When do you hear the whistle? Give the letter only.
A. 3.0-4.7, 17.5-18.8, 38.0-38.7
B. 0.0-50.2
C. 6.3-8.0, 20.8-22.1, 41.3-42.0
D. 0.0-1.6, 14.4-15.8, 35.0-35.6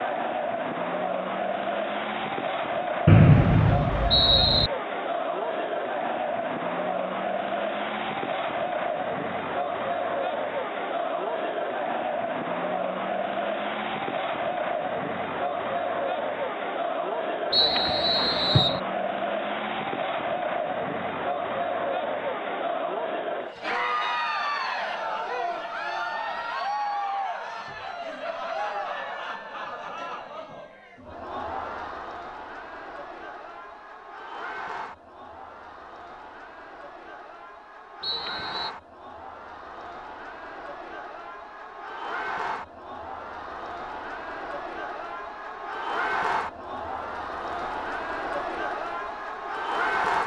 A.